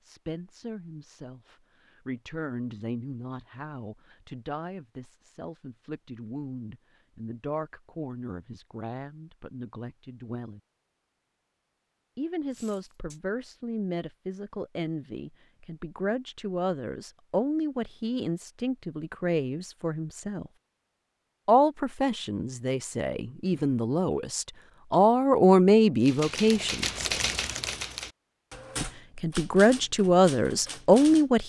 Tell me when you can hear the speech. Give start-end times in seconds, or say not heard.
0.0-10.6, 12.2-20.5, 21.4-27.1, 28.8-31.4.